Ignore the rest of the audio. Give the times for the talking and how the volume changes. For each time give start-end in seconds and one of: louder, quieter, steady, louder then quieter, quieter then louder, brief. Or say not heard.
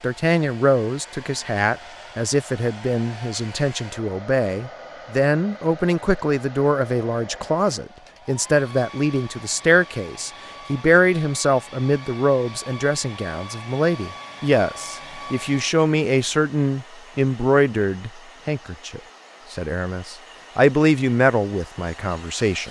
0.0-22.6 steady.